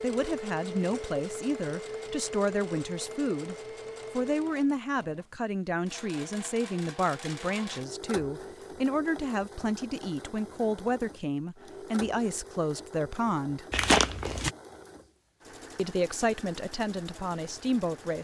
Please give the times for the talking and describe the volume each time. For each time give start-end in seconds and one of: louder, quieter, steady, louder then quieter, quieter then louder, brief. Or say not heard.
0.0-13.7 steady
15.8-18.2 brief.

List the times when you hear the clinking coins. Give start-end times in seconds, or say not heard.
not heard.